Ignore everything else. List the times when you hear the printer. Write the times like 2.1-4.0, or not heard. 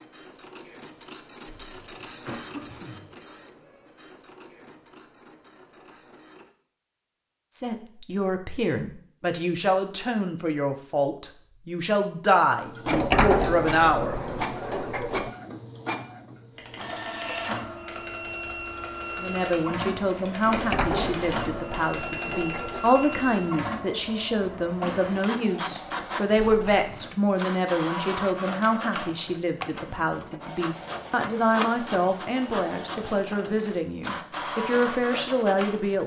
0.0-6.5, 12.6-36.0.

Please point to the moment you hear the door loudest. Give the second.
13 s.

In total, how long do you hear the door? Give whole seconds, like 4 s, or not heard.
5 s.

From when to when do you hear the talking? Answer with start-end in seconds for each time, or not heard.
7.5-14.2, 19.1-36.0.